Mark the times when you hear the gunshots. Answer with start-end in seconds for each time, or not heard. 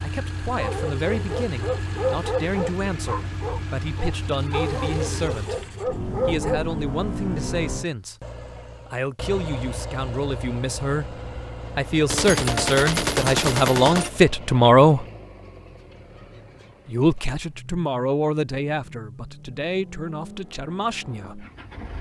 12.1-14.1.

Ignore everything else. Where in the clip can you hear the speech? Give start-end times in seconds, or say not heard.
0.0-5.7, 6.2-8.2, 8.8-15.1, 16.9-21.4.